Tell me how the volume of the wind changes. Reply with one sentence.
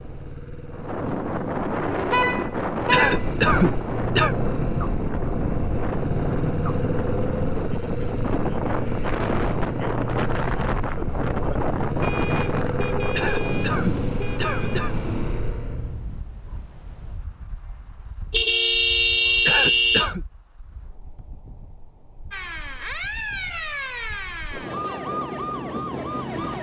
The loudness of the wind goes down, then up.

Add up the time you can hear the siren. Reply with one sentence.
The siren can be heard for 4 seconds in total.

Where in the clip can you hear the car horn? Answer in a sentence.
You can hear the car horn from 2.1 to 3.3 s, from 12.0 to 14.8 s and from 18.3 to 20.1 s.